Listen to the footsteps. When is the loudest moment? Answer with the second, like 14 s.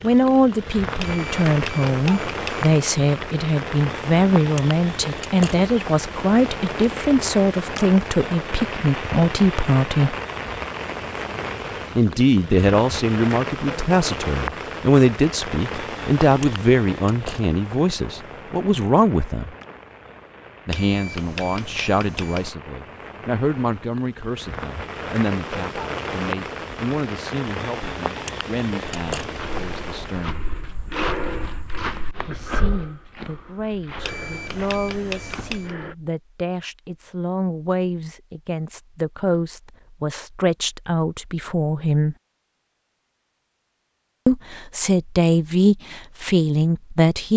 31 s.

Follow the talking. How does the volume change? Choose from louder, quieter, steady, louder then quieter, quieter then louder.
quieter then louder.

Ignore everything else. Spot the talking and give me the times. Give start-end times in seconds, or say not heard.
0.0-10.2, 11.9-19.6, 20.6-30.4, 32.2-42.1, 44.2-47.3.